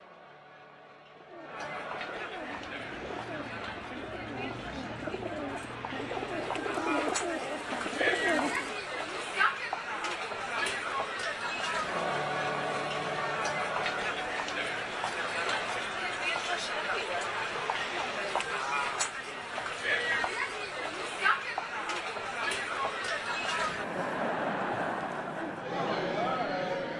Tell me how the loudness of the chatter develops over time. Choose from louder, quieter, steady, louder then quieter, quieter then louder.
louder.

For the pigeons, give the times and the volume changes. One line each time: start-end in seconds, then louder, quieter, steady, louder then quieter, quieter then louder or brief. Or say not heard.
1.1-8.8 louder.